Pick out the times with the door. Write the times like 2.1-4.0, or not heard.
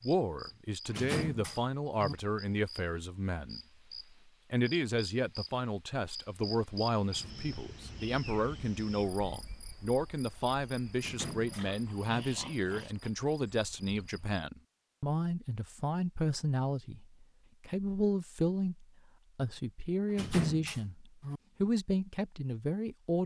0.8-2.1, 10.9-12.2, 20.1-21.4.